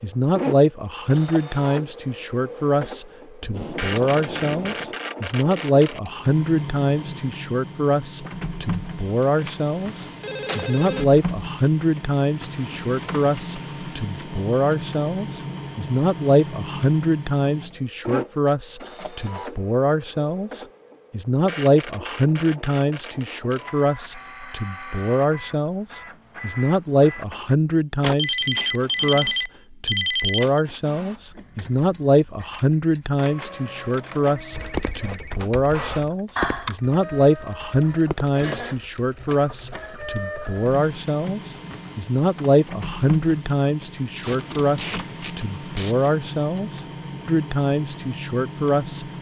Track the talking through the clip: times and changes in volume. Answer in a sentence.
You can hear the talking from 0.0 to 49.0 s, at a steady volume.